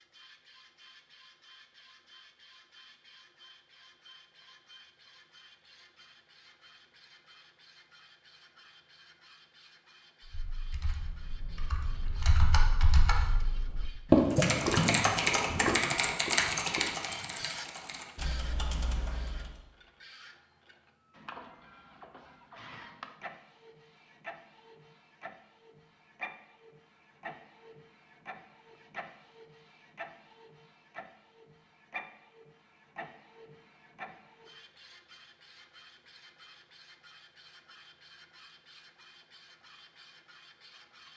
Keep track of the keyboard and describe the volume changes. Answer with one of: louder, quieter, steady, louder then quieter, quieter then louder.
louder then quieter.